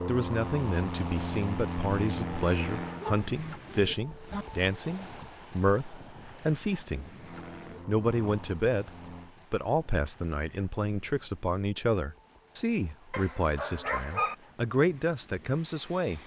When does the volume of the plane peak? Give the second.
2 s.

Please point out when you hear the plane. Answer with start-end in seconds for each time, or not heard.
0.0-3.1, 7.2-9.3.